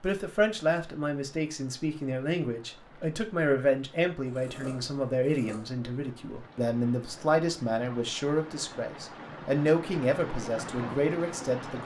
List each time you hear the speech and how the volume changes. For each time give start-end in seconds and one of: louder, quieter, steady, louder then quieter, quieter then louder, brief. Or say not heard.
0.0-11.8 steady.